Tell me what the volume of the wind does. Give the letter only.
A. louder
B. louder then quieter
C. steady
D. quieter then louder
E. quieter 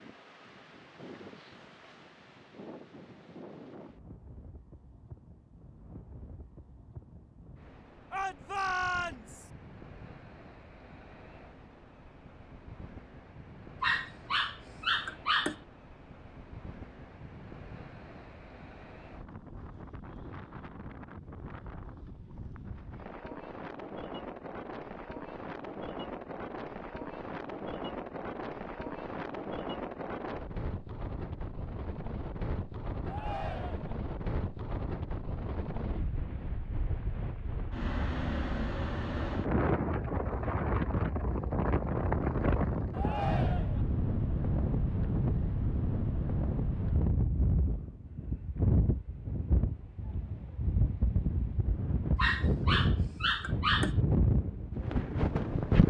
A.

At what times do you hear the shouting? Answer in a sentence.
You can hear the shouting from 8.1 to 9.5 s, from 33.0 to 34.0 s and from 42.9 to 43.9 s.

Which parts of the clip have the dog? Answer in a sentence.
The dog can be heard from 13.8 to 15.6 s and from 52.1 to 54.0 s.